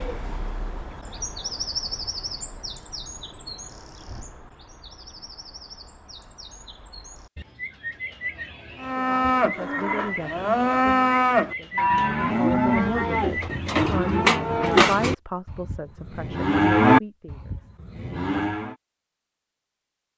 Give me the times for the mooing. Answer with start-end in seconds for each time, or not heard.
8.8-18.8.